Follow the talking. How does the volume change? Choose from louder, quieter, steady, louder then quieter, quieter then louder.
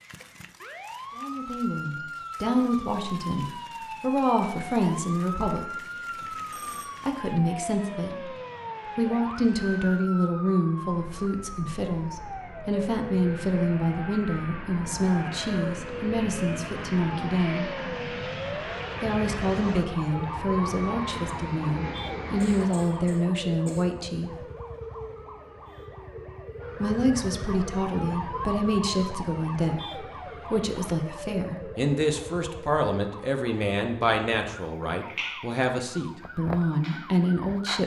steady.